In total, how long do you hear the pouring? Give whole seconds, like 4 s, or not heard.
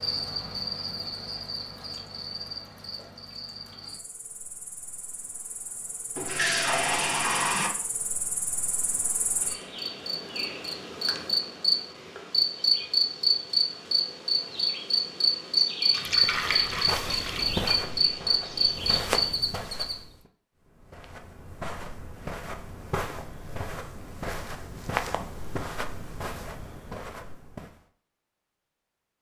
3 s.